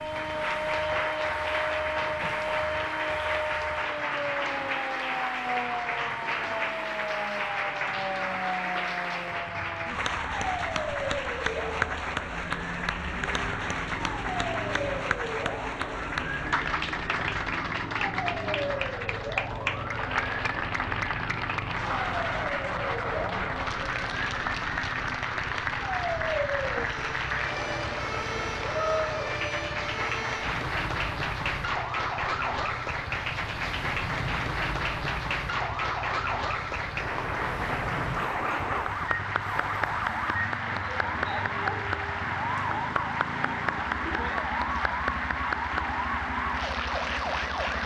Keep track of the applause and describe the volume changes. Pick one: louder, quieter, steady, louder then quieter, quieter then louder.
steady.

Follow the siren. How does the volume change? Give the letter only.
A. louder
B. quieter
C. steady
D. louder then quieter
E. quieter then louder
C.